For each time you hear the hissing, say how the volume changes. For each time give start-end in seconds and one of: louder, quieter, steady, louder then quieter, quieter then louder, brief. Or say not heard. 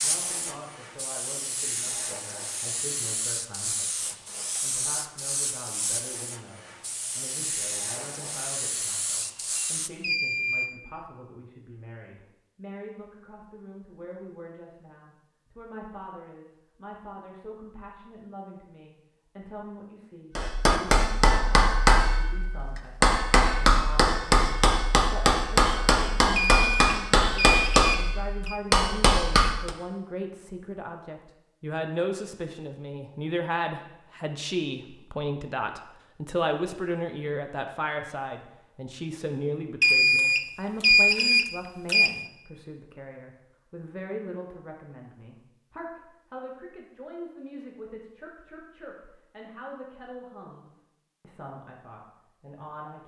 0.0-9.9 steady.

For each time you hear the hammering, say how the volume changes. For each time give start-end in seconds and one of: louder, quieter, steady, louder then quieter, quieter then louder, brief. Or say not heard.
20.4-29.8 steady.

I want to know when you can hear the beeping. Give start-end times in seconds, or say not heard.
9.6-10.7, 26.4-28.6, 39.8-42.1.